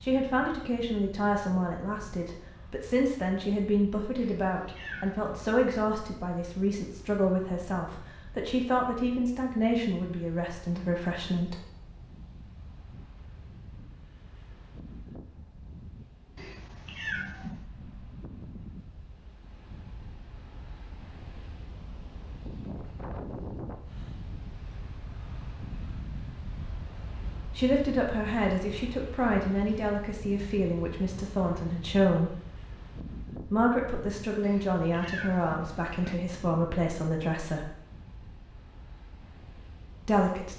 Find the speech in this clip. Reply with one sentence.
You can hear the speech from 0.0 to 11.6 s, from 27.6 to 32.4 s, from 33.4 to 37.7 s and from 40.0 to 40.5 s.